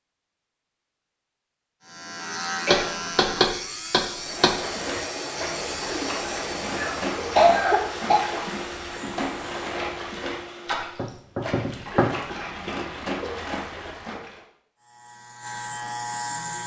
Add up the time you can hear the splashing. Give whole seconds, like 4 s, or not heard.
10 s.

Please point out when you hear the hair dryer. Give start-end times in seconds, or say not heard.
4.1-11.2.